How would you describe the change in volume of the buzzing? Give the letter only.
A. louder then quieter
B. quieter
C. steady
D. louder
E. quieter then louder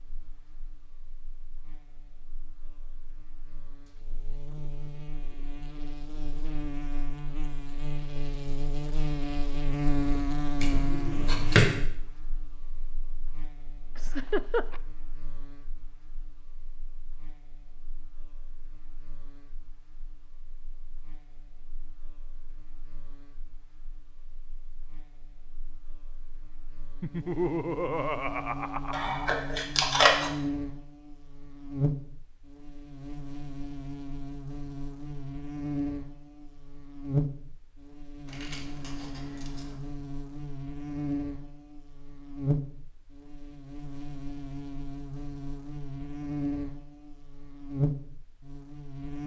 E.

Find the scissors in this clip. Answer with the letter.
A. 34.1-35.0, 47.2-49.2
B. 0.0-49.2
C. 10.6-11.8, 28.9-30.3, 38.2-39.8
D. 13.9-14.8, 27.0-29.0
C.